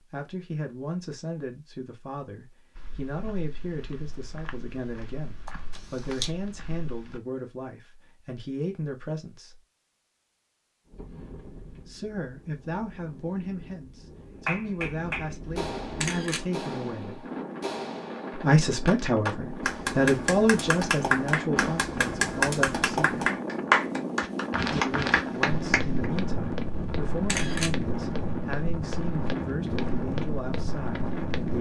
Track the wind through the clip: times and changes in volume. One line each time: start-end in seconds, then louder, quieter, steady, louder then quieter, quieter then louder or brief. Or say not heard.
10.8-31.5 louder.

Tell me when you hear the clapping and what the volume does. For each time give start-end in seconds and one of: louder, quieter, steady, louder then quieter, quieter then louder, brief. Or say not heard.
14.4-26.1 louder.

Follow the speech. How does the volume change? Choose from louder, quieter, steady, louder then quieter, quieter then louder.
louder then quieter.